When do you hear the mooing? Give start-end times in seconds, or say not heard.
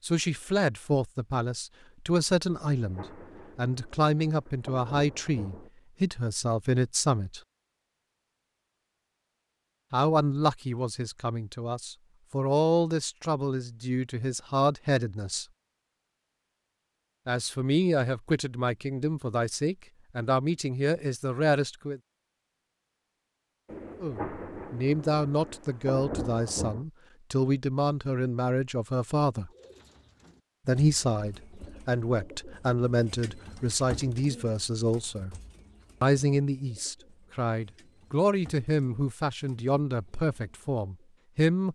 not heard.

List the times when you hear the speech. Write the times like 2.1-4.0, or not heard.
0.0-7.4, 9.9-15.4, 17.2-22.0, 24.0-29.5, 30.6-35.4, 36.0-41.6.